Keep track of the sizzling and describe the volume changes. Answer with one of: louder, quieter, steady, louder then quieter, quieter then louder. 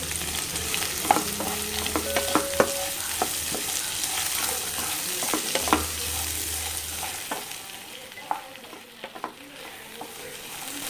quieter.